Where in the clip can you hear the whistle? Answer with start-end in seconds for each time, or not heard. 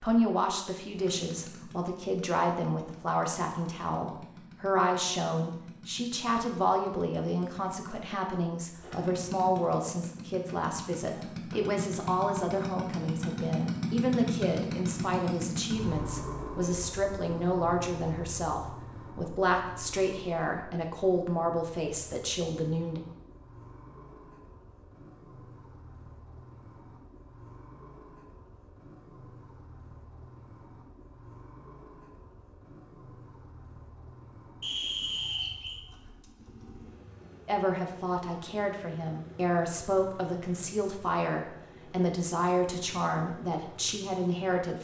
34.6-35.8.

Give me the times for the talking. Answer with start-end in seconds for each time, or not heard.
0.0-23.0, 37.5-44.8.